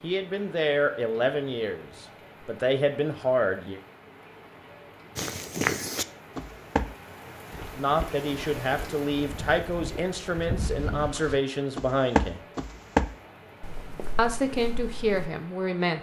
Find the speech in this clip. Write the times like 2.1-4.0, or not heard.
0.0-3.8, 7.8-12.4, 14.2-15.9.